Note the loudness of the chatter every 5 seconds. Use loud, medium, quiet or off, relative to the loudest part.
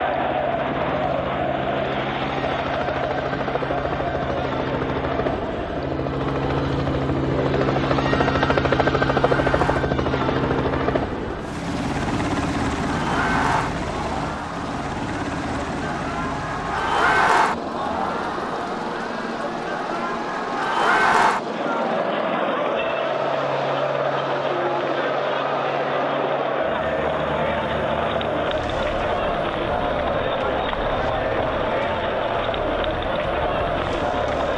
loud, medium, medium, loud, loud, loud, loud.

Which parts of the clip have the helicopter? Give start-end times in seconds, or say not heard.
0.0-34.5.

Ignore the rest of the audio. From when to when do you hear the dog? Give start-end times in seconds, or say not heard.
not heard.